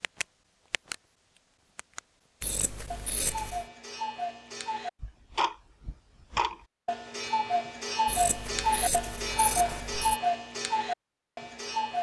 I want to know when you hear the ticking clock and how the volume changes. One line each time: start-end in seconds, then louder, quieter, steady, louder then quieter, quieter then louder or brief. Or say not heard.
0.0-11.9 louder.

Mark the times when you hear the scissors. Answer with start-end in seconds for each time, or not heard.
2.4-3.6, 8.1-10.2.